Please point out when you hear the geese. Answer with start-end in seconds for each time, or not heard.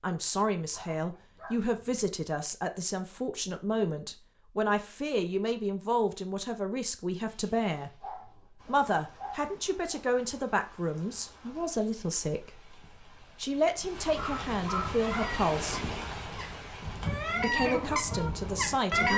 14.7-19.1.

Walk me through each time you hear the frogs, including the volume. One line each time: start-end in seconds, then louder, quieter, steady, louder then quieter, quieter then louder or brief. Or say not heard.
not heard.